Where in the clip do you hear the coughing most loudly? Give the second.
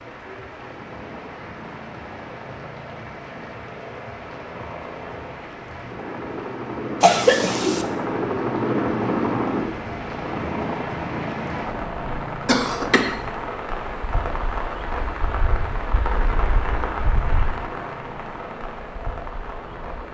7 s.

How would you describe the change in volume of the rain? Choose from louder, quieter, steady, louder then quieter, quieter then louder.
louder.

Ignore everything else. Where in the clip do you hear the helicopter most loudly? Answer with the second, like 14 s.
9 s.